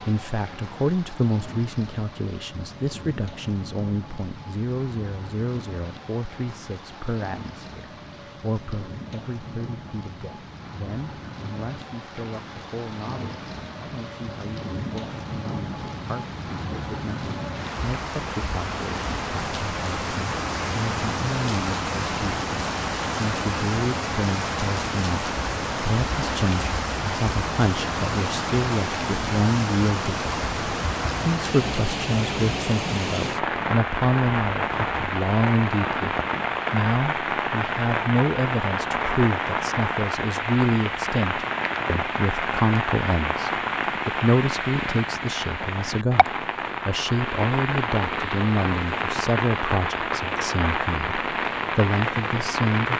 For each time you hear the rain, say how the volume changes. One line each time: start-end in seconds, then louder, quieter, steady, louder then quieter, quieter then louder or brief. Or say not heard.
0.0-52.9 louder.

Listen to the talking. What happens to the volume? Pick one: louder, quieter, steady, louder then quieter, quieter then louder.
quieter then louder.